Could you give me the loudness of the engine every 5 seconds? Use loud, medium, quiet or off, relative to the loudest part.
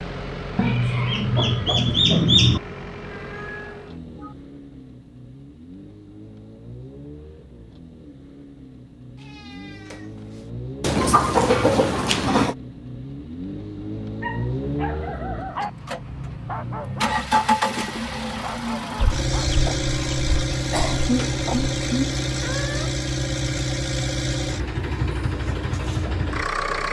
medium, quiet, medium, loud, loud, loud.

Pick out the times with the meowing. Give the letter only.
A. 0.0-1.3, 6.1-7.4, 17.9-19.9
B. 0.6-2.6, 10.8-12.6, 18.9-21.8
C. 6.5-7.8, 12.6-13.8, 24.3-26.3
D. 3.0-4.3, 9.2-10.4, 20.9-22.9
D.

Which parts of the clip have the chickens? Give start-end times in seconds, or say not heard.
0.6-2.6, 10.8-12.6, 18.9-21.8.